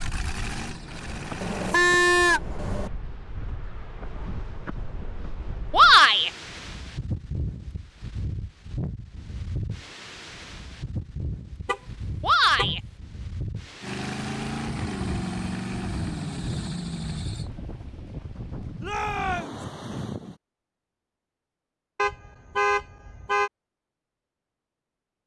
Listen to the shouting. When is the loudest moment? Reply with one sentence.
The volume of the shouting peaks at 6 seconds.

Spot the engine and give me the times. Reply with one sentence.
The engine can be heard from 0.0 to 1.8 s and from 13.8 to 17.5 s.